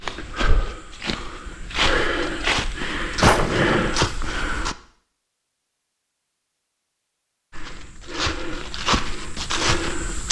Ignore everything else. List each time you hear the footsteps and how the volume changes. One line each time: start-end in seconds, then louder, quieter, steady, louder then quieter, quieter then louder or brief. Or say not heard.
0.0-4.8 louder
7.5-10.2 brief.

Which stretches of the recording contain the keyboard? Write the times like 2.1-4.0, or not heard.
not heard.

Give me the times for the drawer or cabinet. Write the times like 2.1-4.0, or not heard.
3.2-4.0.